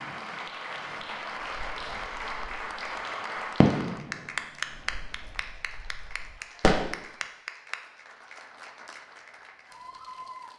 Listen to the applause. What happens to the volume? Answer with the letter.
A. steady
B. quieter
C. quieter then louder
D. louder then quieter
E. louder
B.